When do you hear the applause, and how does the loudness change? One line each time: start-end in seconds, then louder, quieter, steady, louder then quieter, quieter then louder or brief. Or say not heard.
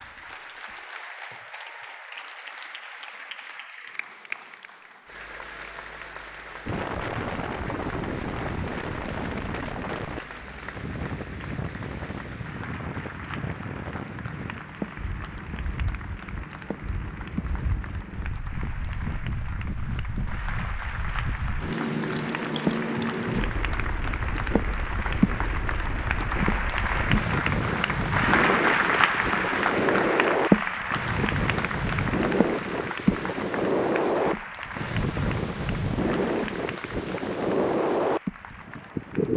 0.0-39.3 louder then quieter.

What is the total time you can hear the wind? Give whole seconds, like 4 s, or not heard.
33 s.